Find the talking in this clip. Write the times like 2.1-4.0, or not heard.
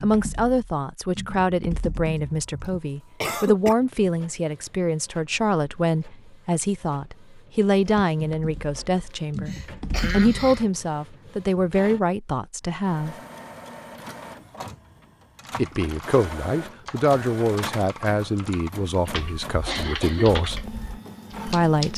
0.0-13.2, 15.6-20.6, 21.4-21.9.